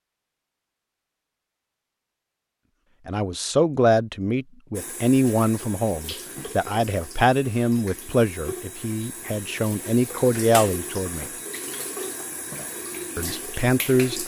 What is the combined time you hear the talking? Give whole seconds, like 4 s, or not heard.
9 s.